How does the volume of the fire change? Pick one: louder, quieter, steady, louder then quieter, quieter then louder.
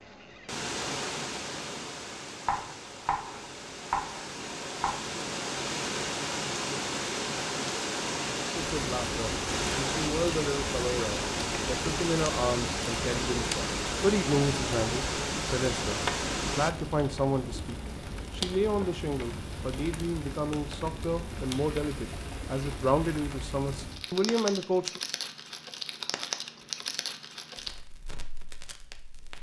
steady.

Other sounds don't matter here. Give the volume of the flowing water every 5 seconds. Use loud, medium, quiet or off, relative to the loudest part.
medium, loud, loud, loud, off, off.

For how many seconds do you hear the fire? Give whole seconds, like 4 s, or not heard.
21 s.